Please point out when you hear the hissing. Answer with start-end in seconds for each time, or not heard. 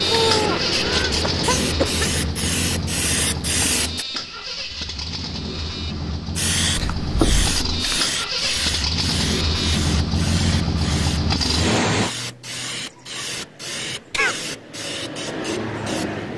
0.0-4.0, 6.3-16.3.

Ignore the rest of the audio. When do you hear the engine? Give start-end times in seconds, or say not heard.
0.0-12.2.